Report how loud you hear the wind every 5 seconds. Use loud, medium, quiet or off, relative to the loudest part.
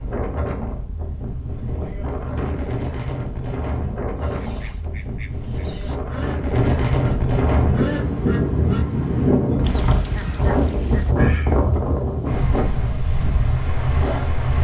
medium, loud, loud.